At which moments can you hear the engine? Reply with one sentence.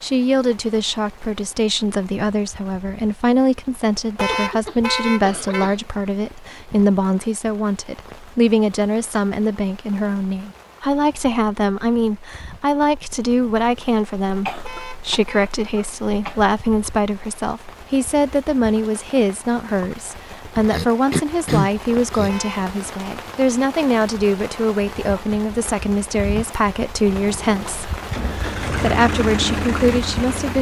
You can hear the engine from 27.0 to 30.5 s.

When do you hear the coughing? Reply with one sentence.
You can hear the coughing from 4.2 to 5.8 s, from 14.4 to 16.4 s and from 20.6 to 22.3 s.